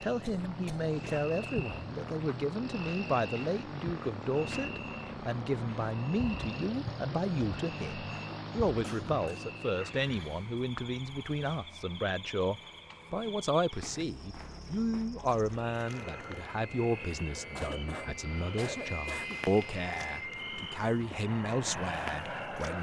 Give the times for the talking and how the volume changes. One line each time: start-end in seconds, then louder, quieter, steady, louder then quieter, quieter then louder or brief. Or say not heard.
0.0-22.7 steady.